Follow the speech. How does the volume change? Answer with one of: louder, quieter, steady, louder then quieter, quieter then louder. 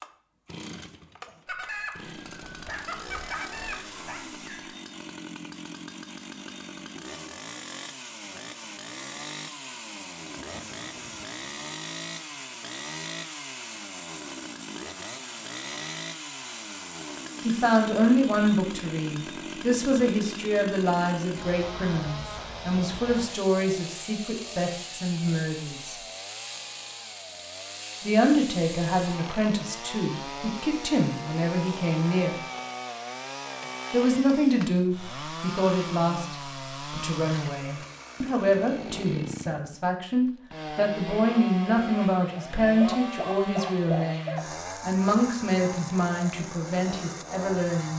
steady.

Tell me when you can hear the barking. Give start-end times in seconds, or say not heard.
2.4-4.2, 42.8-44.5.